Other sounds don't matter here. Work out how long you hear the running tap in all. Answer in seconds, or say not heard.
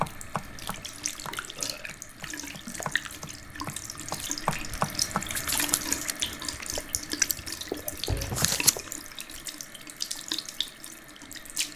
12 s.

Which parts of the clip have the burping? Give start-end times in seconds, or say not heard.
0.5-2.2, 8.1-8.7.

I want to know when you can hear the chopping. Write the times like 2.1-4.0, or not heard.
0.0-5.8.